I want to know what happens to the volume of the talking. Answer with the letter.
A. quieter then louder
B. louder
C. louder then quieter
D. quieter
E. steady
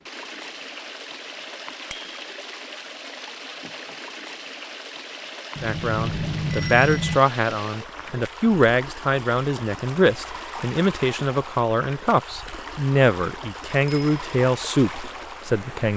E.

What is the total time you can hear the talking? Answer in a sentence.
You can hear the talking for 10 seconds altogether.